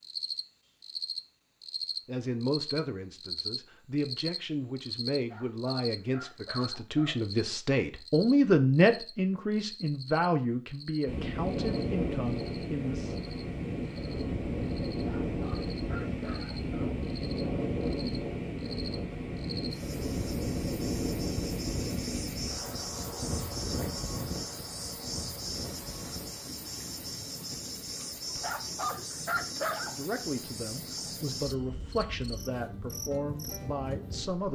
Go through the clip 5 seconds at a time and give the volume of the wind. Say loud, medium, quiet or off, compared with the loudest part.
off, off, loud, loud, loud, quiet, quiet.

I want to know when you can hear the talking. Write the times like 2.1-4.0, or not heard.
2.0-13.2, 29.9-34.5.